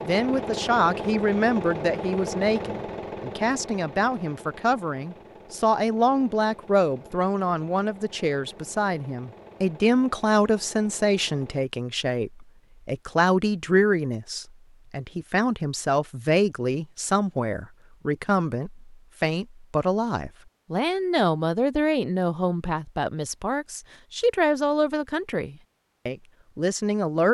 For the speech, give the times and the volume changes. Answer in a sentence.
You can hear the speech from 0.0 to 27.3 s, at a steady volume.